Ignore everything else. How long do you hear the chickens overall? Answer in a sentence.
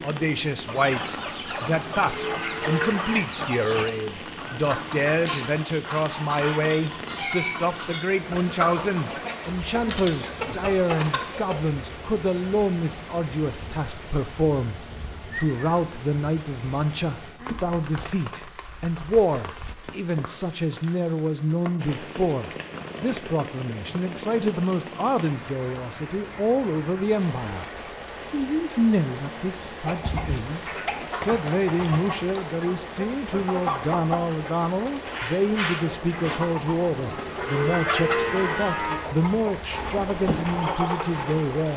The chickens can be heard for 22 seconds in total.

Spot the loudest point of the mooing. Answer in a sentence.
The loudest moment of the mooing is at 38 seconds.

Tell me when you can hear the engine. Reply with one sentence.
The engine can be heard from 39.6 to 41.7 s.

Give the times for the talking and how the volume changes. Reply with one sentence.
You can hear the talking from 0.0 to 27.6 s, at a steady volume; and from 28.3 to 41.7 s, at a steady volume.